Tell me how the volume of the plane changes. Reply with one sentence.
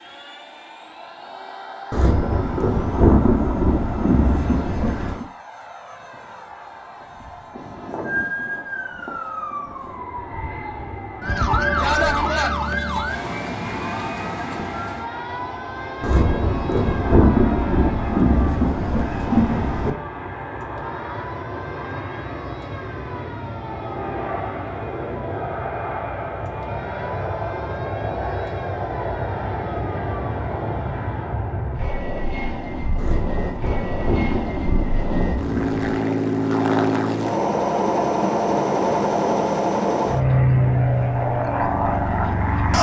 The volume of the plane goes up.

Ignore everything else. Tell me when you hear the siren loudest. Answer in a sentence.
The volume of the siren peaks at 12 seconds.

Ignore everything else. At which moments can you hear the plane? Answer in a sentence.
You can hear the plane from 0.0 to 42.7 s.